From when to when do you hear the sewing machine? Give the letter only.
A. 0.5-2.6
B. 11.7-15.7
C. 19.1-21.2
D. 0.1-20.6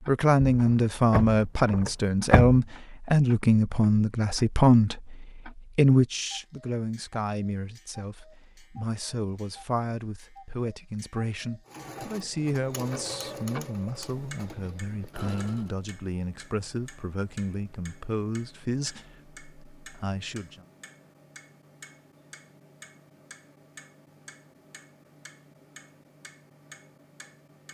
B.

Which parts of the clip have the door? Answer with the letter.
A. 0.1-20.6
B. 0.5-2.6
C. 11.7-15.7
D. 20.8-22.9
B.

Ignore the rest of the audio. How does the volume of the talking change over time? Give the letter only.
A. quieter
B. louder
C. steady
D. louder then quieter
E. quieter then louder
A.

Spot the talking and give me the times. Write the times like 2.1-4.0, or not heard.
0.1-20.6.